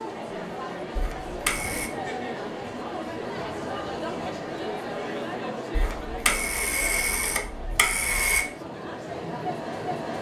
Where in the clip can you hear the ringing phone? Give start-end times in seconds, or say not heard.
0.9-1.9, 5.7-8.4.